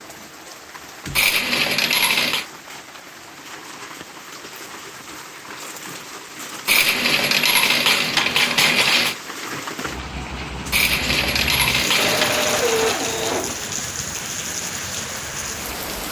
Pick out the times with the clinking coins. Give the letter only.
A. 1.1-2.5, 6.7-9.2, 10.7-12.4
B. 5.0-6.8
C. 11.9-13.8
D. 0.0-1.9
A.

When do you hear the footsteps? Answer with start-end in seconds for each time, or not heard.
not heard.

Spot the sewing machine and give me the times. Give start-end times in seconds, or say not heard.
11.9-13.8.